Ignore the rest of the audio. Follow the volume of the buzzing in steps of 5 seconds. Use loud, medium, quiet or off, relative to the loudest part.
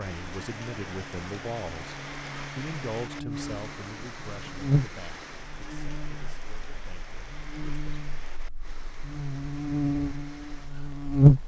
quiet, quiet, loud.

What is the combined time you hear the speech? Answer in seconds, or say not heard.
8 s.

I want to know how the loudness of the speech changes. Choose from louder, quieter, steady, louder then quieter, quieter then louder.
quieter.